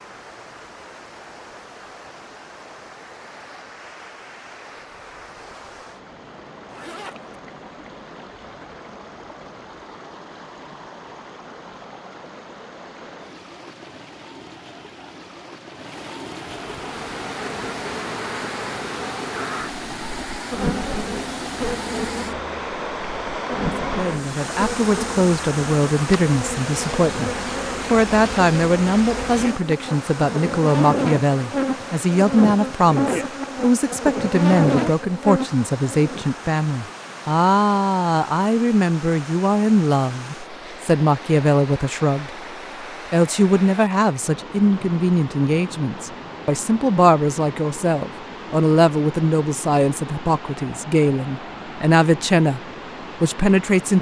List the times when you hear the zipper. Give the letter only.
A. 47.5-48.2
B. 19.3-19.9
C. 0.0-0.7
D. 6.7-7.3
D.